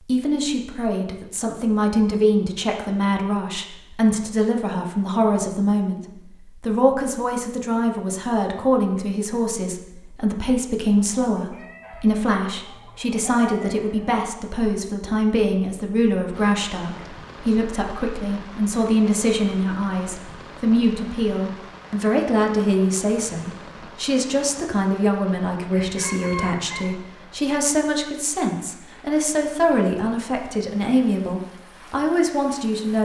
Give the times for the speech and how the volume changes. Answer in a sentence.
The speech can be heard from 0.0 to 33.0 s, at a steady volume.